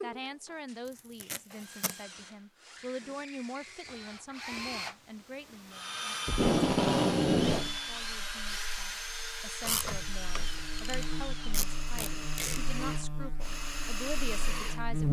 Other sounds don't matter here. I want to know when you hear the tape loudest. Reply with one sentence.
The loudest moment of the tape is at 7 seconds.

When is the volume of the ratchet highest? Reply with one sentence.
The loudest moment of the ratchet is at 10 seconds.